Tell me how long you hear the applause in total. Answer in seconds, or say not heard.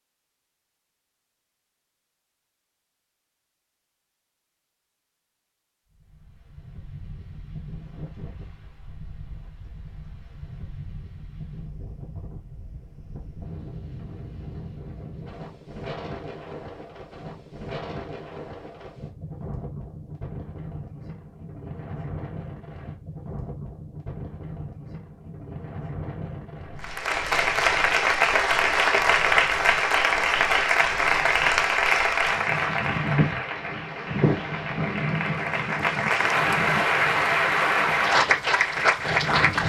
13 s.